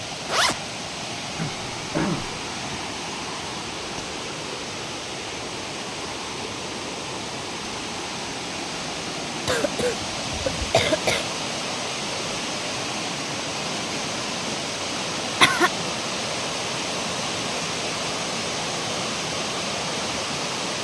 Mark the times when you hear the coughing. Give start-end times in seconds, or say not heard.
1.4-2.4, 9.4-11.2, 14.9-15.7.